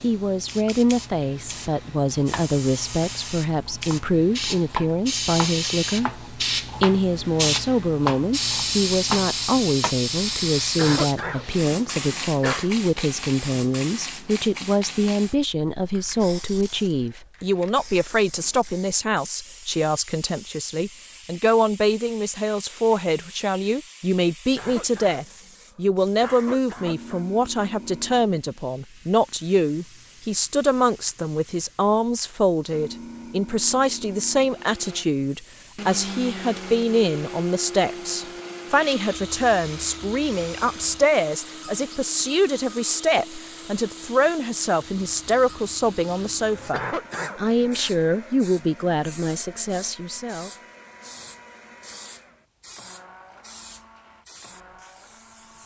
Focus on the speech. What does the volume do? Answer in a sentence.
The volume of the speech stays about the same.